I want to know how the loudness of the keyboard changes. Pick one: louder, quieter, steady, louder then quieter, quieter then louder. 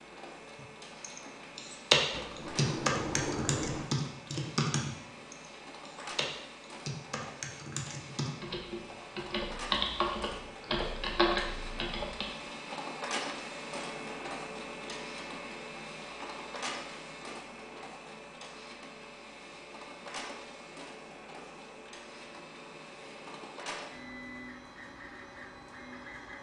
quieter then louder.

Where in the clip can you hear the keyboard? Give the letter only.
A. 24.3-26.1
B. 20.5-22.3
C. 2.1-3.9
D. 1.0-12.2
D.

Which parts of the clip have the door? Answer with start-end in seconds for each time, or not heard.
2.1-3.9.